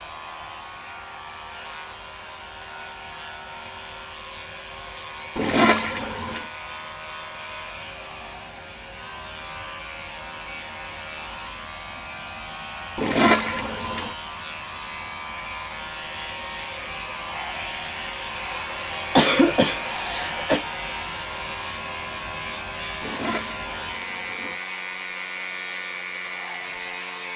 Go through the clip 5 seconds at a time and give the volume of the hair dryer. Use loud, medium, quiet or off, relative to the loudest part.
medium, medium, medium, loud, loud, medium.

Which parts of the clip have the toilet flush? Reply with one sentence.
The toilet flush can be heard from 5.3 to 6.5 s, from 12.9 to 14.2 s and from 23.0 to 24.6 s.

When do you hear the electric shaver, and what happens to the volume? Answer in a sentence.
The electric shaver can be heard from 0.0 to 27.3 s, getting louder.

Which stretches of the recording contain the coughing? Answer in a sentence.
The coughing can be heard from 19.1 to 20.6 s.